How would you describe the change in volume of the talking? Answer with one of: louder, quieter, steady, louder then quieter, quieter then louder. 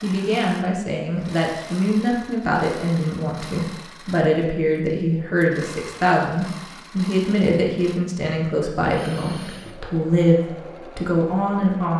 steady.